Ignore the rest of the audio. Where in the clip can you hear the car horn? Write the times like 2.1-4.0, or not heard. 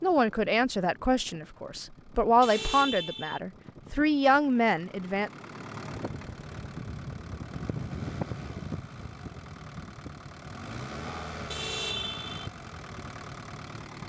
2.4-3.4, 11.5-12.5.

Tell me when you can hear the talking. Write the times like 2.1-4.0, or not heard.
0.0-5.3.